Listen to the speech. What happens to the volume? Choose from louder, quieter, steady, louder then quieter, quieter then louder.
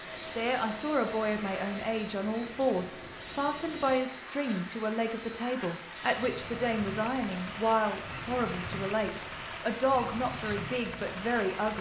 steady.